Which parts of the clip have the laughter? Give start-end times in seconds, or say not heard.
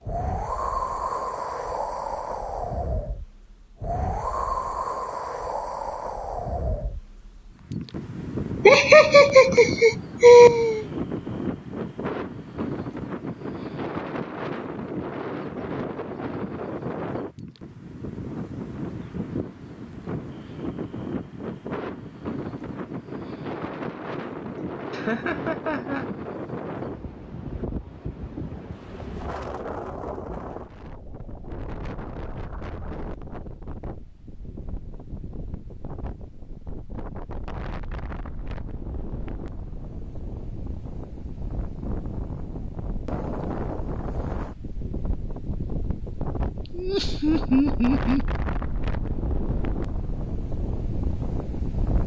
8.7-10.8, 24.6-26.1, 46.7-48.2.